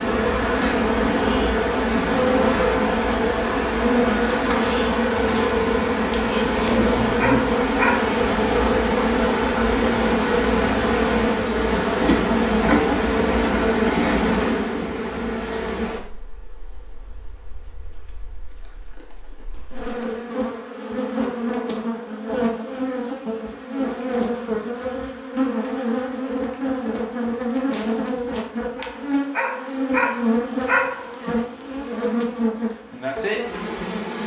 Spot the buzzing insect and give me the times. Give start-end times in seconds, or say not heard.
0.0-34.2.